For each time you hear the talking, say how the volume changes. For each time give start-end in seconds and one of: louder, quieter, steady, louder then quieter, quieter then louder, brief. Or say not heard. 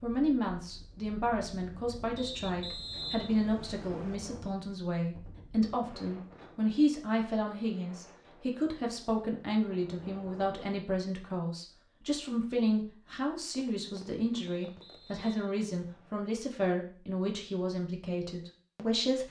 0.0-19.2 steady.